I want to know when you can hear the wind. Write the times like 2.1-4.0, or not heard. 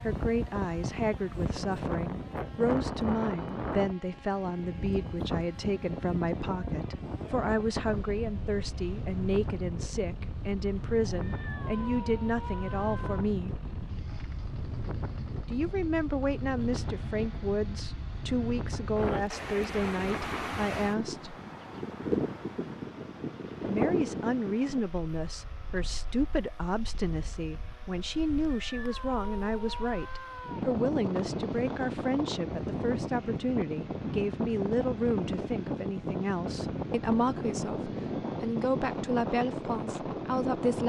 0.0-40.8.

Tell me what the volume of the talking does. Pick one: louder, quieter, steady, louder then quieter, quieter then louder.
steady.